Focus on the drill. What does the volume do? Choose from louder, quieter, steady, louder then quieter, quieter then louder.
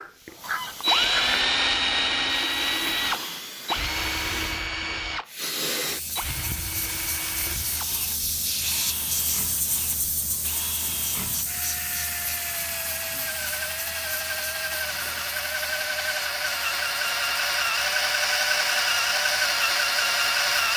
quieter then louder.